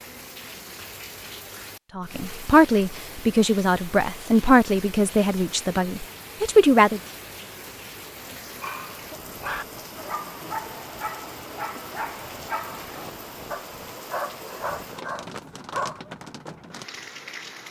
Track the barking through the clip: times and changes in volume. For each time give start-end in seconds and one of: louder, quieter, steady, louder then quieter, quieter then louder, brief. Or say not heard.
8.6-16.0 steady.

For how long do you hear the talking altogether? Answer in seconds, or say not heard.
5 s.